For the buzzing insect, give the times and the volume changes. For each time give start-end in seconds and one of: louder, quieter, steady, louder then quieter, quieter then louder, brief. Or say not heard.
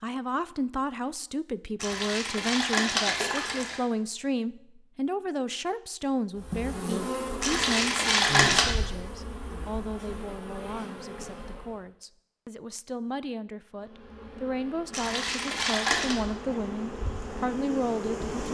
6.3-11.8 quieter
13.7-18.4 louder.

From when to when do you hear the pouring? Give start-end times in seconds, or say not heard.
1.8-3.8, 7.4-8.8, 14.9-16.1.